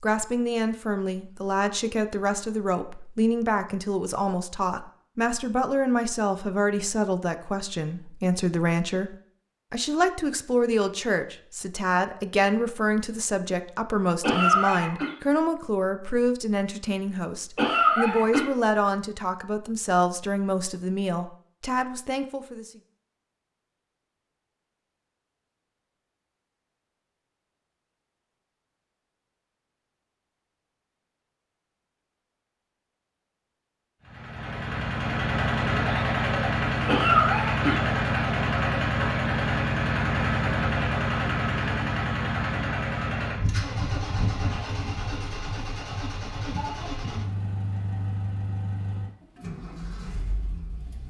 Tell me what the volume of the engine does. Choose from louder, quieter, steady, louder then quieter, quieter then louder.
quieter.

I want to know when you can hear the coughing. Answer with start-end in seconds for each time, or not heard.
14.2-15.1, 17.6-18.4, 36.9-37.9.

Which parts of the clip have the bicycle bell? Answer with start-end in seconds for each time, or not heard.
not heard.